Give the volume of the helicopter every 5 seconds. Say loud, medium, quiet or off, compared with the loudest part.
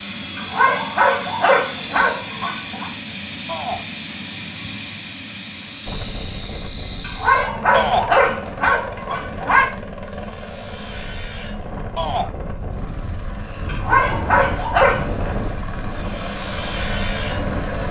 loud, loud, medium, loud.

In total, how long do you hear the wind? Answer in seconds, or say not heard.
12 s.